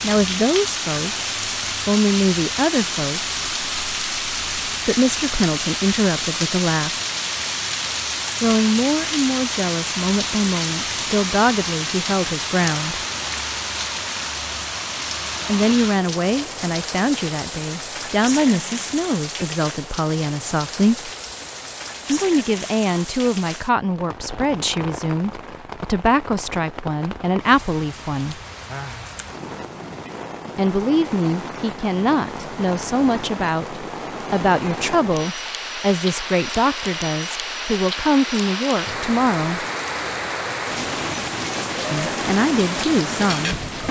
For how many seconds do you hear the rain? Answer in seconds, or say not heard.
44 s.